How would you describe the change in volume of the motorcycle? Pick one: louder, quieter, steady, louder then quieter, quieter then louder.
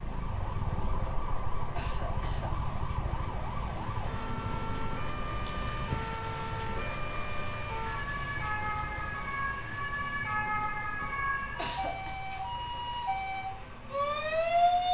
quieter.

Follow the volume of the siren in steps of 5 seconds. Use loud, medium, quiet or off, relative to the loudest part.
quiet, medium, loud.